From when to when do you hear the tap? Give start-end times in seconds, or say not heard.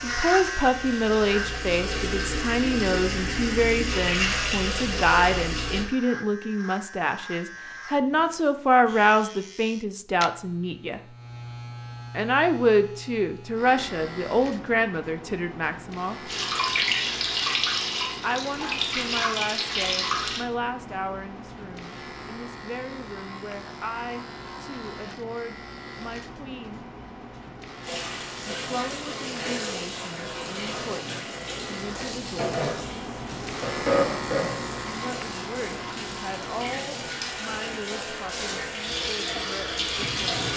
0.0-5.8, 16.2-20.4, 27.8-40.5.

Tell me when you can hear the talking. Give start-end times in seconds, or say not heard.
0.0-11.0, 12.2-16.3, 18.2-26.9, 28.6-32.5, 34.9-40.5.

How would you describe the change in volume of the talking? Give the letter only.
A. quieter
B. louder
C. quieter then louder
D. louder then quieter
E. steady
A.